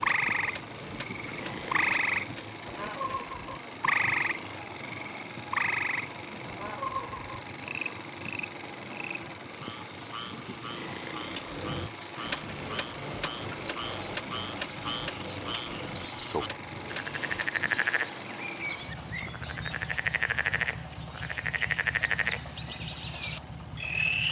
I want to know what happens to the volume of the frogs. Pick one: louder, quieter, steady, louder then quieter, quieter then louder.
quieter then louder.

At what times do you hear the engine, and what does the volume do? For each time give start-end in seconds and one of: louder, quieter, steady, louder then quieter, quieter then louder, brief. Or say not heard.
0.0-24.2 steady.